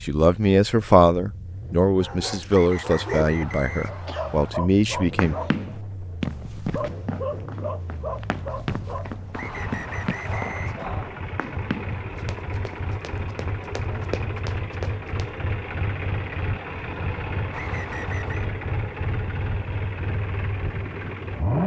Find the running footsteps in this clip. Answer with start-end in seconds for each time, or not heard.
5.2-15.3.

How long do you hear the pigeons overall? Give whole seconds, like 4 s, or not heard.
not heard.